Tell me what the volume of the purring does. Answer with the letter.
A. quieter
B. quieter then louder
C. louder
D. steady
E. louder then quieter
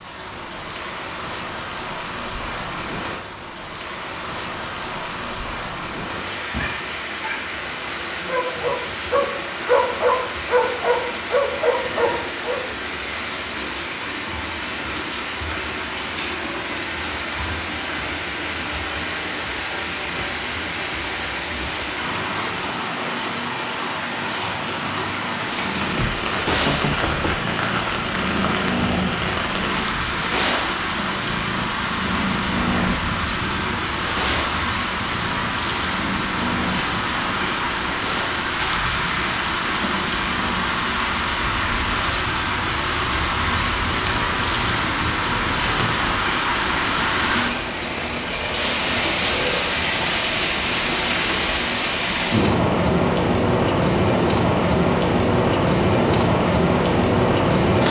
A.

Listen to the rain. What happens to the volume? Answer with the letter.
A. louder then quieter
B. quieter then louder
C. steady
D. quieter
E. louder
E.